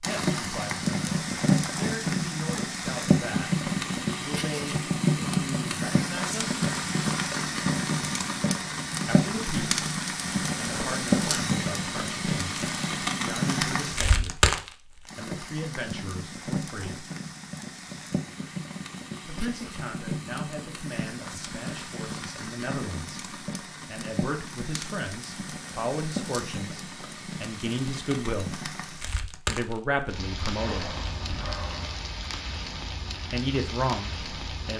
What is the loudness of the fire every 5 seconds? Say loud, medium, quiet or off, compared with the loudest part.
loud, loud, loud, medium, medium, medium, medium.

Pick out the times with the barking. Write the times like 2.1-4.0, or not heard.
30.6-32.0.